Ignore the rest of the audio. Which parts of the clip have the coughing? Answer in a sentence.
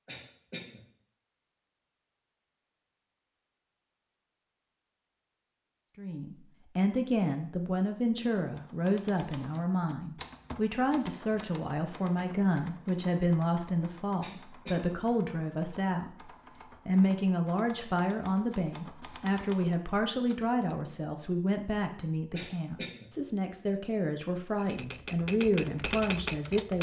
The coughing can be heard from 0.1 to 0.8 s, from 14.2 to 14.9 s and from 22.3 to 23.1 s.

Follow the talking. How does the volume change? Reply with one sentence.
The volume of the talking stays about the same.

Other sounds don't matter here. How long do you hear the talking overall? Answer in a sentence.
The talking can be heard for 21 seconds in total.